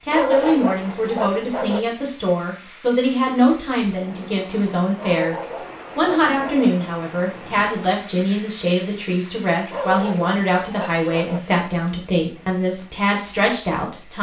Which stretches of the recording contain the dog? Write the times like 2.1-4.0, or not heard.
0.1-1.8, 5.0-6.7, 9.7-11.4.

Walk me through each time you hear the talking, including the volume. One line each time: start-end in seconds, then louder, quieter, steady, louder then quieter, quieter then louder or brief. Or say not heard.
0.0-14.1 steady.